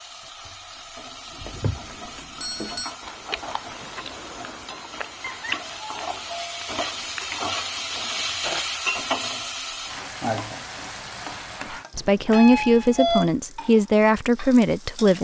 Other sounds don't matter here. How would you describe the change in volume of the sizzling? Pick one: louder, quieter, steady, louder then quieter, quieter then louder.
louder then quieter.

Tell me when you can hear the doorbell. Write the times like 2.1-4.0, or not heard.
1.9-3.0, 5.2-6.8, 11.9-13.3.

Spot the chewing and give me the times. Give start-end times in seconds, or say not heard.
1.3-8.7.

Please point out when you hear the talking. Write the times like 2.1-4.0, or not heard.
11.9-15.1.